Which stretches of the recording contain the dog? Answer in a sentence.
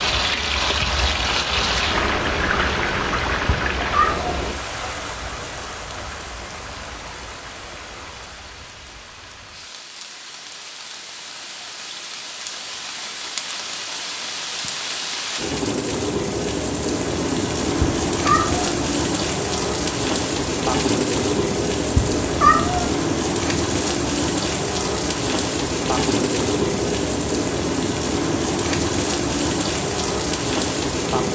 You can't hear the dog here.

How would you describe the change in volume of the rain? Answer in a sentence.
The loudness of the rain goes down, then up.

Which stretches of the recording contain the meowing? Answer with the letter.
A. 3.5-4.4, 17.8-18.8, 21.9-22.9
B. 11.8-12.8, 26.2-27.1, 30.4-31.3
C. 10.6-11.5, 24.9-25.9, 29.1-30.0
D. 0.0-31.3
A.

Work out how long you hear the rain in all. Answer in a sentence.
You can hear the rain for 31 seconds altogether.